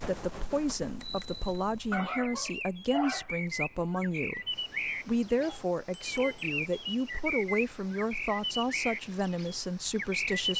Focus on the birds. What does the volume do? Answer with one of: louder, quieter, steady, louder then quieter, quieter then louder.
louder.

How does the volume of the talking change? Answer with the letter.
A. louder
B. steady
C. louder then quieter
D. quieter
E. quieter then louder
B.